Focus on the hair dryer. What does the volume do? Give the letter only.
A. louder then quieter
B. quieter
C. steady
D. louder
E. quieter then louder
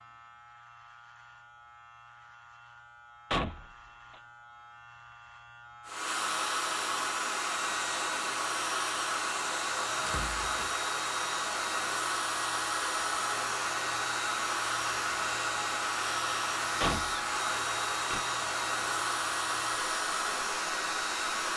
C.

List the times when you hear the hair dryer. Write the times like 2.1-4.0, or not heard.
5.8-21.5.